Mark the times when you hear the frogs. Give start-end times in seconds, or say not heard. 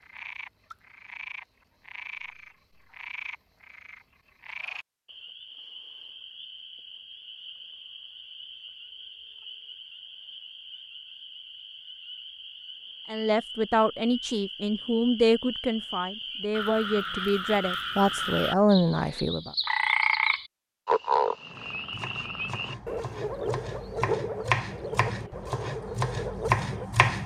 0.0-26.9.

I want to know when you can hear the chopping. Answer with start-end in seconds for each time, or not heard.
21.5-27.2.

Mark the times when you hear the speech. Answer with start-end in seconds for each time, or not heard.
13.1-19.5.